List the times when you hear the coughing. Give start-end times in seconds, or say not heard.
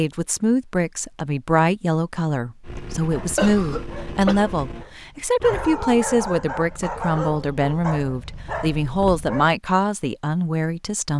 3.4-4.4.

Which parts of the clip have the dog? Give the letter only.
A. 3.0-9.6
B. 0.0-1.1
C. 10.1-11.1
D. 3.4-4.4
A.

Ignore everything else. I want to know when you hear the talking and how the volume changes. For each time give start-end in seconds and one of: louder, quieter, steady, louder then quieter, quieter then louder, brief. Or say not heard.
0.0-11.1 steady.